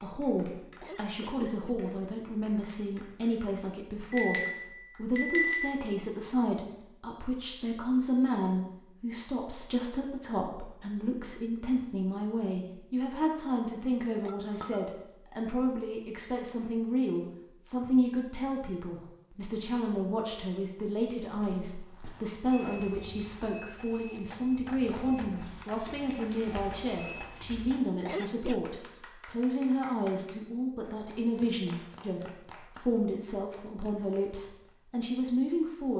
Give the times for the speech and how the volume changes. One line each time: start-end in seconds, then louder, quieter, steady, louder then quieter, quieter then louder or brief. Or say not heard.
0.0-35.9 steady.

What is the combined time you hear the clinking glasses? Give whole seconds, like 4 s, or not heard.
4 s.